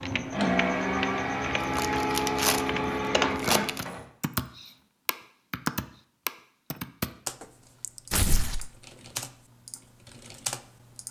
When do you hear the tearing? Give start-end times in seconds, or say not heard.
1.6-2.6, 3.4-3.9, 8.1-8.7.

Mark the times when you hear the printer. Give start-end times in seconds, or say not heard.
0.0-4.0.